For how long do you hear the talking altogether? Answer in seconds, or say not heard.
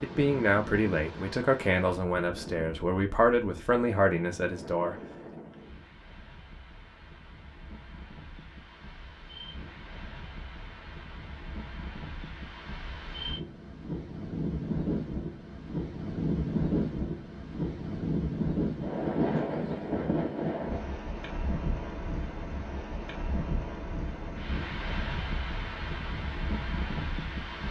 5 s.